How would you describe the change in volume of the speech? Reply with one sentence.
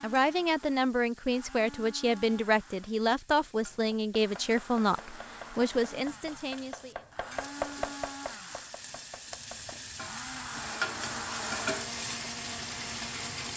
The volume of the speech stays about the same.